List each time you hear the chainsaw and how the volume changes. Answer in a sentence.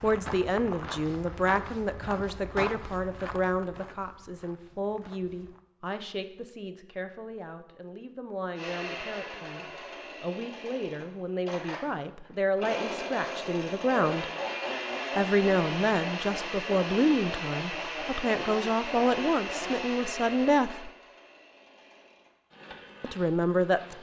You can hear the chainsaw from 8.6 to 23.9 s, getting louder then quieter.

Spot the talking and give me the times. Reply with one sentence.
The talking can be heard from 0.0 to 14.2 s, from 15.2 to 20.9 s and from 23.0 to 23.9 s.